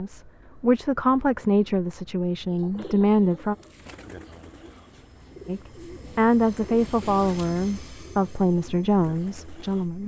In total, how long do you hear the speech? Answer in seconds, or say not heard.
8 s.